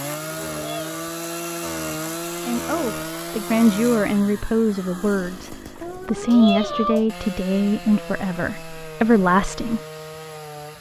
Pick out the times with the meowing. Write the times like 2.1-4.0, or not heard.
0.0-1.2, 5.8-7.1.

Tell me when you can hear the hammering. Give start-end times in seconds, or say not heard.
not heard.